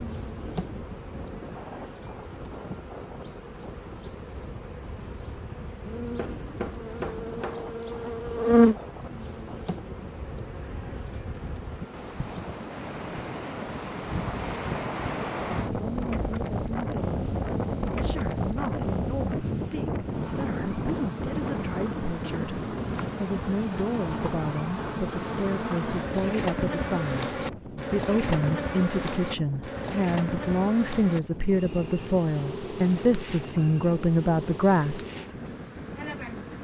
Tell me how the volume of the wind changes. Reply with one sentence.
The loudness of the wind goes up, then down.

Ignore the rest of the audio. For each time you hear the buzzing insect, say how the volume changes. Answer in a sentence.
You can hear the buzzing insect from 0.0 to 12.4 s, getting louder then quieter; and from 20.0 to 36.5 s, getting louder then quieter.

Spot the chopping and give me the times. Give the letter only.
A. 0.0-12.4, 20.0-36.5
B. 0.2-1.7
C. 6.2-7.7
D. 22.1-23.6
C.